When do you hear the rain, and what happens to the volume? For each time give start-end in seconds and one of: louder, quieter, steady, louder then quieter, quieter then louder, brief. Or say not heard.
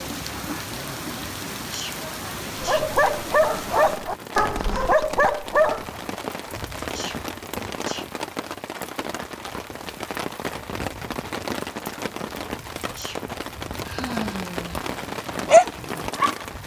0.0-16.6 steady.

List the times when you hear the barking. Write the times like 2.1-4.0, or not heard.
2.5-6.0, 15.2-16.4.